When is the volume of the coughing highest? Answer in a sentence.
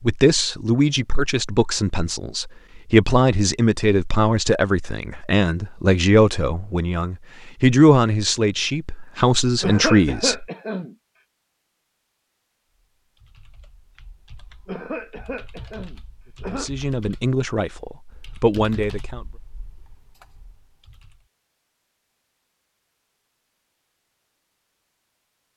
The loudest moment of the coughing is at 10 seconds.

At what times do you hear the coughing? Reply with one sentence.
The coughing can be heard from 9.6 to 10.9 s and from 14.7 to 16.7 s.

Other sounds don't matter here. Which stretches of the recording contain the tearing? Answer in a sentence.
You can't hear the tearing here.